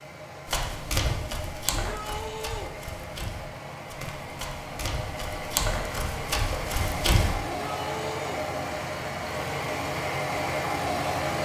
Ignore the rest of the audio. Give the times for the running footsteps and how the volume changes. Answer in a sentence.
You can hear the running footsteps from 0.5 to 7.3 s, getting quieter then louder.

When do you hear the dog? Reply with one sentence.
You can't hear the dog here.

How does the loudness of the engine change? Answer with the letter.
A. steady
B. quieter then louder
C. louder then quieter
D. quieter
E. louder
E.